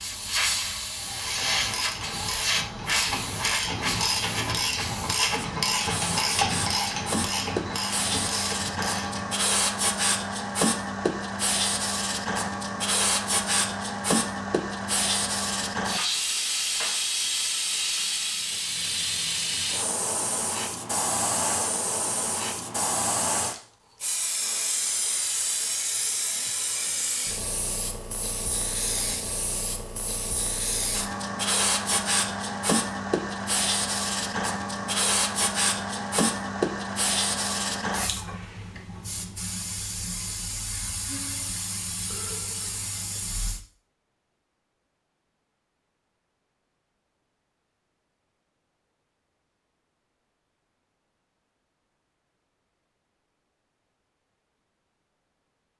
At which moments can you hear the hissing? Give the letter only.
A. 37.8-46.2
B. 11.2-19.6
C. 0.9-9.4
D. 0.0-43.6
D.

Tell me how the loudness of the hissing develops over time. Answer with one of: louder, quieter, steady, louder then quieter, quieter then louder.
steady.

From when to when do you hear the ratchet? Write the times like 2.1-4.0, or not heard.
0.9-9.4.